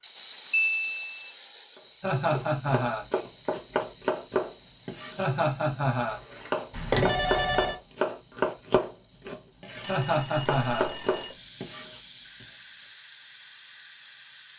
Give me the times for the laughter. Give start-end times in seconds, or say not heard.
2.0-3.0, 5.2-6.2, 9.8-10.9.